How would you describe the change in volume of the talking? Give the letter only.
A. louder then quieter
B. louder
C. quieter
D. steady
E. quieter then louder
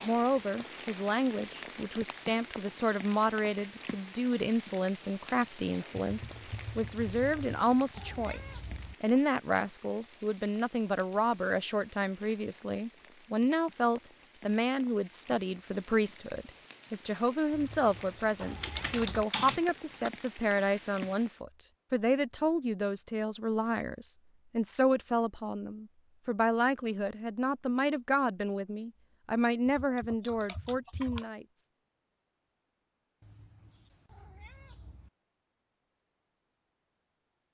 D.